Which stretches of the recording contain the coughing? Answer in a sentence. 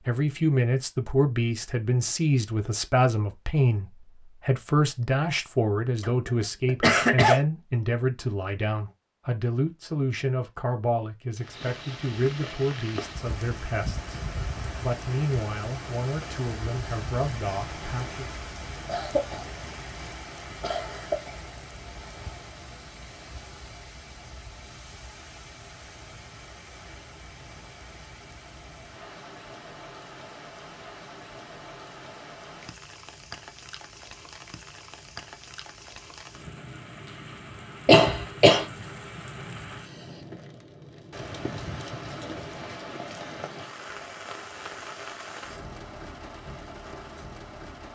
You can hear the coughing from 6.0 to 7.4 s, from 18.9 to 19.4 s, from 20.6 to 21.4 s and from 37.9 to 38.6 s.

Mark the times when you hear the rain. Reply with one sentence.
The rain can be heard from 11.3 to 47.9 s.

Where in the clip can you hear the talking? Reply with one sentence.
The talking can be heard from 0.1 to 18.3 s.